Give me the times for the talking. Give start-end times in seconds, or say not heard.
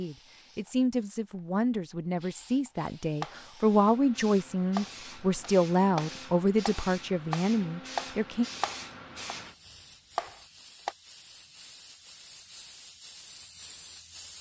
0.0-8.4.